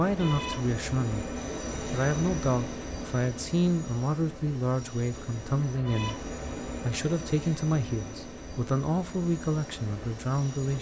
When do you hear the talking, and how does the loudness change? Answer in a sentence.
The talking can be heard from 0.0 to 10.7 s, at a steady volume.